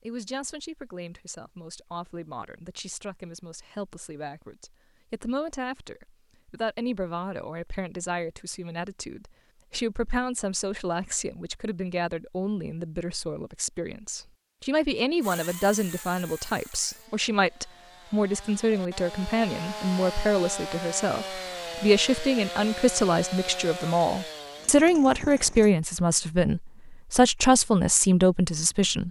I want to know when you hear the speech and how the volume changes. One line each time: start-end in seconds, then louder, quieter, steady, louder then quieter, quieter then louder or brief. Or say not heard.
0.0-29.0 louder.